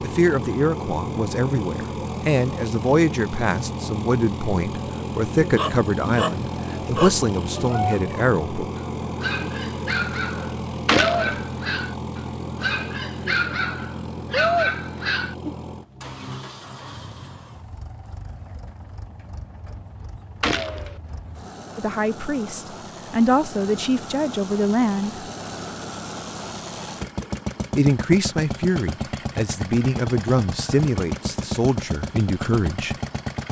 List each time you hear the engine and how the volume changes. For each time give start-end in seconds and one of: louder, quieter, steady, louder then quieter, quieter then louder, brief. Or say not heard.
0.0-33.4 quieter then louder.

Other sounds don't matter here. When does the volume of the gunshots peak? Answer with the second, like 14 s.
11 s.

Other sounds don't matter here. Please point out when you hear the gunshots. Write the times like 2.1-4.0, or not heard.
10.8-11.4, 20.4-20.9.